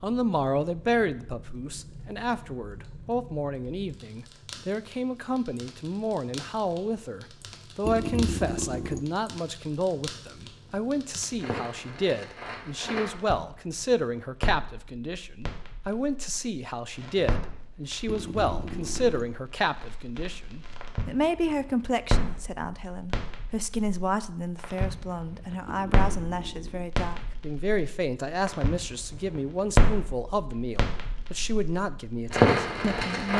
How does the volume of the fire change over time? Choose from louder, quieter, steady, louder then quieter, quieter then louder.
louder.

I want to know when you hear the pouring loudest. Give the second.
8 s.